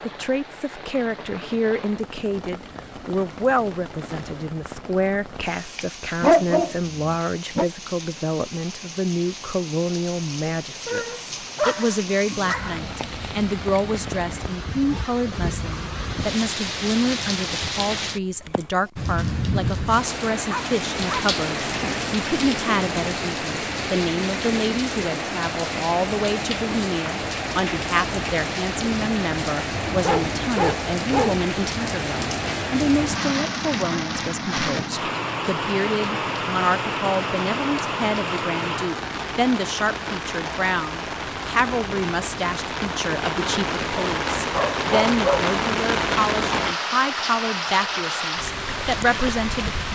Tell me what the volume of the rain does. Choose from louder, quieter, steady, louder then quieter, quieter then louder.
louder.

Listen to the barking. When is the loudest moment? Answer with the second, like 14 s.
6 s.